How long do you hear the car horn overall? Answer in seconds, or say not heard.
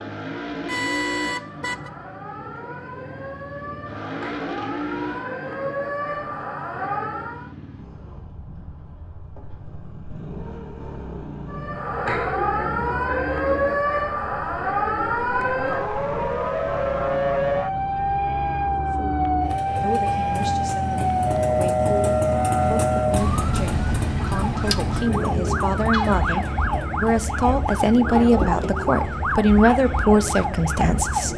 2 s.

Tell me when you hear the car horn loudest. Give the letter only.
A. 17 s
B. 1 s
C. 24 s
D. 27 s
B.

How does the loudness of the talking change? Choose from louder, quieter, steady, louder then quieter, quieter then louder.
louder.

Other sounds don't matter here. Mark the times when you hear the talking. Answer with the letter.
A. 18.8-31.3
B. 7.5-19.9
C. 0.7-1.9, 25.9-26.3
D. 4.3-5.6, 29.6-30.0
A.